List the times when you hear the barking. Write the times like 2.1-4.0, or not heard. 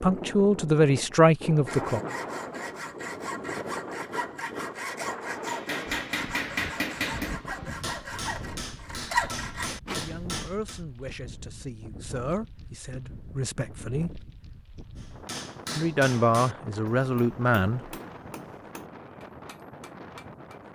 not heard.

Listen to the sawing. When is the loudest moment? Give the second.
9 s.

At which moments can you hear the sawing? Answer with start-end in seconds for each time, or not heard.
1.6-10.0.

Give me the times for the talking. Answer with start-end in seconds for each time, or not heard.
0.0-2.0, 9.9-14.2, 15.8-17.8.